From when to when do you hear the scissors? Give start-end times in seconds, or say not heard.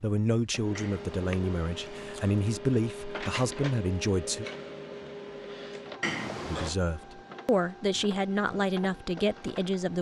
0.8-2.5, 6.0-6.8.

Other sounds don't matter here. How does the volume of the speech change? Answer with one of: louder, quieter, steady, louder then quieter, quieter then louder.
steady.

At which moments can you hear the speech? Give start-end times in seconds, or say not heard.
0.0-4.5, 6.4-9.9.